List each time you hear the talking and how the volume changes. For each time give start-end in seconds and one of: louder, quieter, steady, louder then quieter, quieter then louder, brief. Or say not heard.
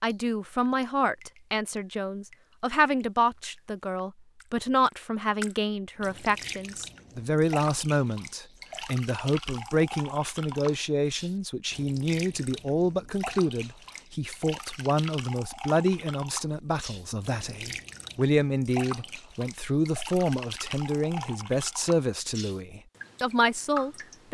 0.0-24.2 steady.